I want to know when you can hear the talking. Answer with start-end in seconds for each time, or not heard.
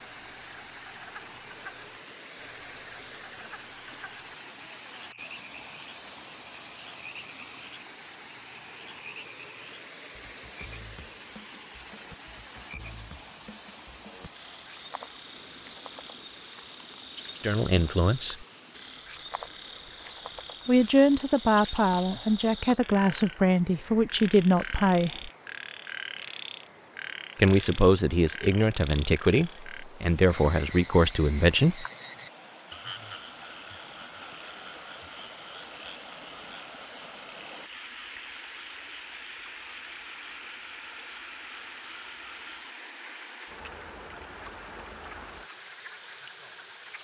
17.4-18.4, 20.6-25.3, 27.4-31.9.